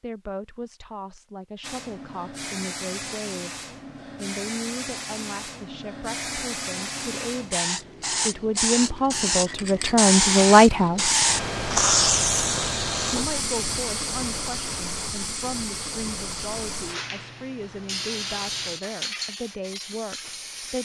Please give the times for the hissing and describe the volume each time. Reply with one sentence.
You can hear the hissing from 1.6 to 20.8 s, getting louder then quieter.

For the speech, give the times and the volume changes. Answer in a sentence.
The speech can be heard from 0.0 to 11.2 s, getting louder; and from 13.1 to 20.8 s, at a steady volume.